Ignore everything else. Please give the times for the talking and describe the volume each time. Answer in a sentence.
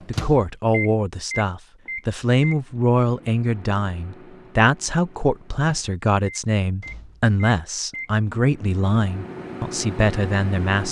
The talking can be heard from 0.1 to 10.8 s, at a steady volume.